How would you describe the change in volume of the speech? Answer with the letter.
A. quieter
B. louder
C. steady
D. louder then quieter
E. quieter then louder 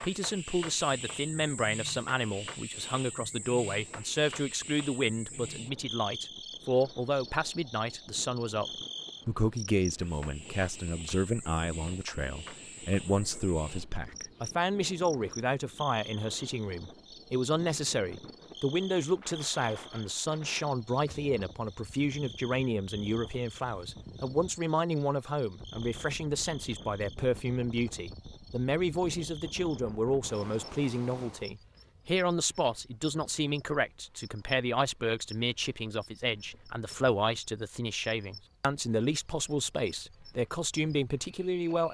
C.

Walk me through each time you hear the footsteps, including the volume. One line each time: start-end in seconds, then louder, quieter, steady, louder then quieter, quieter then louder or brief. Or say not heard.
not heard.